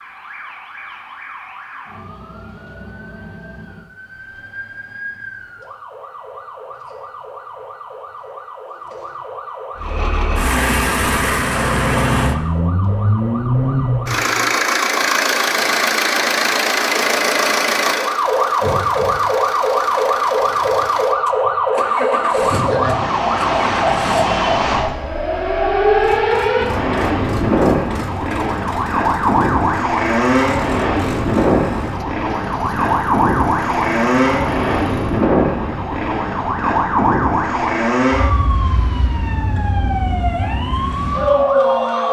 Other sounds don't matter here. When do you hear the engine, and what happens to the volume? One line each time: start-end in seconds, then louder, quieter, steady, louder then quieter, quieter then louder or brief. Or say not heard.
9.8-35.2 quieter.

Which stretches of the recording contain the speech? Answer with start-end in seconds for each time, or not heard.
not heard.